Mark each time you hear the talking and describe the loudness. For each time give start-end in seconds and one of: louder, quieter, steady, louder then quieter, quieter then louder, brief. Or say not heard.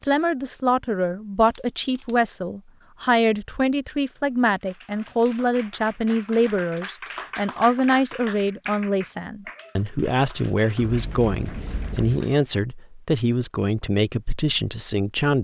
0.0-15.3 steady.